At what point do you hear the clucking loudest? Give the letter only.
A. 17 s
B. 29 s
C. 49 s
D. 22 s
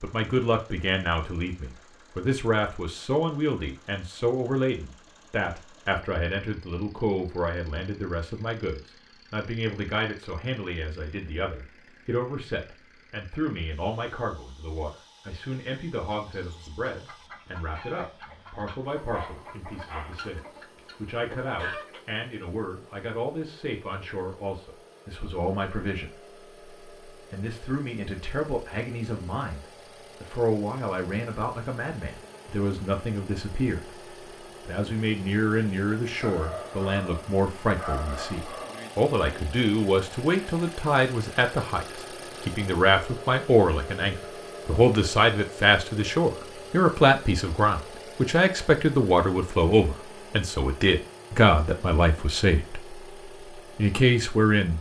D.